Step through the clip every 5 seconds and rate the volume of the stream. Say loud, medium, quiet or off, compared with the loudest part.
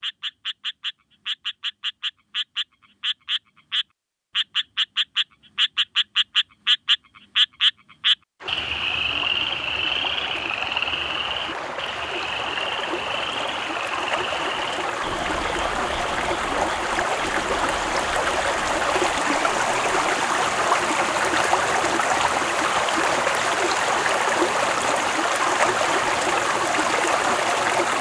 off, quiet, medium, loud, loud, loud.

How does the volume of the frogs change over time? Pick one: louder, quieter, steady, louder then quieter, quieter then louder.
louder then quieter.